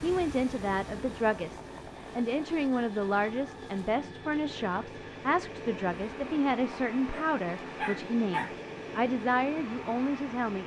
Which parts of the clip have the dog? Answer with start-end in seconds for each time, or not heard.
7.0-8.6.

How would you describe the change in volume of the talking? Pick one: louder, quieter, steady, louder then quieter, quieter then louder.
steady.